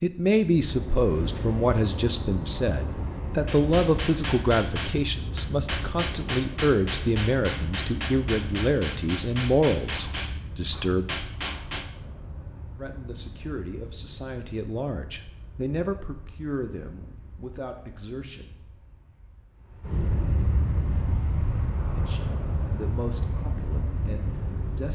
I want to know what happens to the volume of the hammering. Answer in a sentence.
The loudness of the hammering stays about the same.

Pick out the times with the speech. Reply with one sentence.
The speech can be heard from 0.0 to 11.1 s, from 12.8 to 18.6 s and from 21.9 to 24.9 s.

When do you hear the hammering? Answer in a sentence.
You can hear the hammering from 3.5 to 11.9 s.